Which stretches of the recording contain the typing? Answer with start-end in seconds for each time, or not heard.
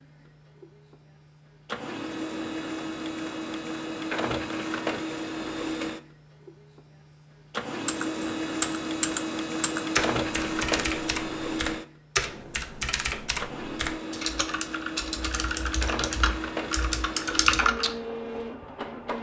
7.8-17.9.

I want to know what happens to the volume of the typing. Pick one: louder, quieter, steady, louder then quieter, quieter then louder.
quieter then louder.